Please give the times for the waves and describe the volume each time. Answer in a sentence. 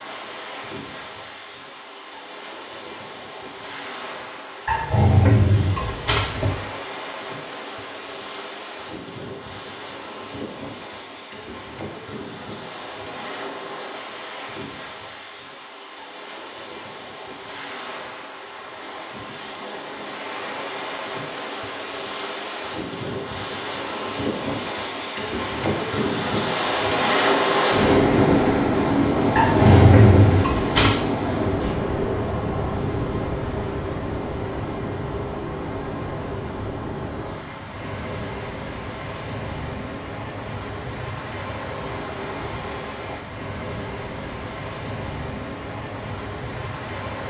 The waves can be heard from 0.0 to 47.2 s, getting louder then quieter.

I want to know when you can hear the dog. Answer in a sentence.
You can hear the dog from 4.7 to 6.6 s and from 29.4 to 31.1 s.